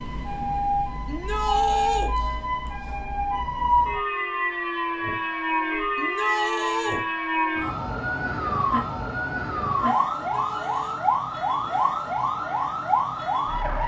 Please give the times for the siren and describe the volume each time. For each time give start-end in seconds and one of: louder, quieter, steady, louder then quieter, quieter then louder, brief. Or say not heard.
0.0-13.8 steady.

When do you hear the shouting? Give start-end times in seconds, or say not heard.
1.1-2.1, 6.0-7.0, 10.2-11.0.